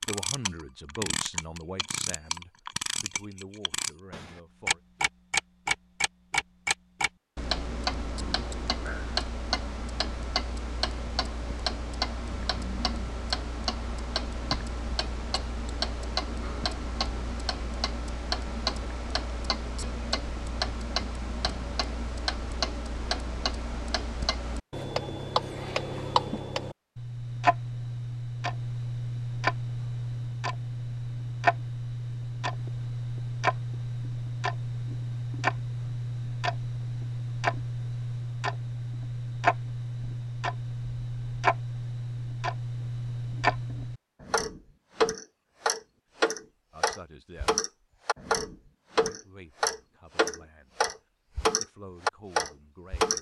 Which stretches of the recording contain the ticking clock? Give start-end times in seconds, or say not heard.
0.0-53.1.